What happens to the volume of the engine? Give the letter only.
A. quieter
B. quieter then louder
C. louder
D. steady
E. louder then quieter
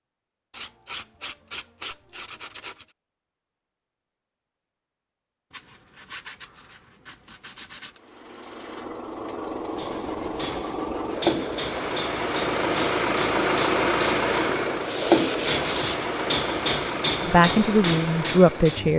E.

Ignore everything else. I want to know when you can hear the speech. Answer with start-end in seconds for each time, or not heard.
17.2-18.9.